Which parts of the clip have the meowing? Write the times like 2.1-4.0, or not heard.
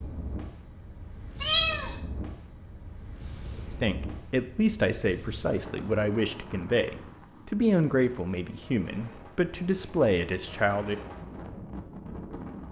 1.4-1.9.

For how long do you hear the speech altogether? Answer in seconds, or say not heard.
7 s.